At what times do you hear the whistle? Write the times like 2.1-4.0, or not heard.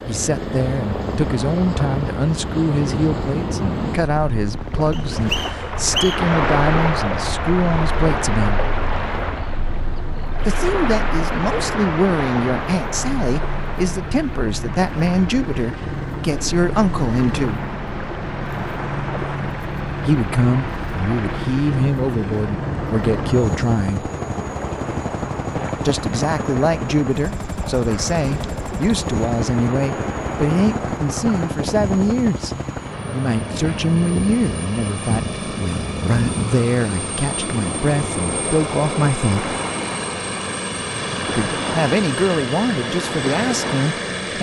4.9-6.2.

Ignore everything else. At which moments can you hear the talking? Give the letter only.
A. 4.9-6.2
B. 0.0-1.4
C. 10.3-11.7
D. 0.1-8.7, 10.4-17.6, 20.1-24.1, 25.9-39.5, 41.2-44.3
D.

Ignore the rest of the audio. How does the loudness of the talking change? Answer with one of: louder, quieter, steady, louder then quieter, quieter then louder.
steady.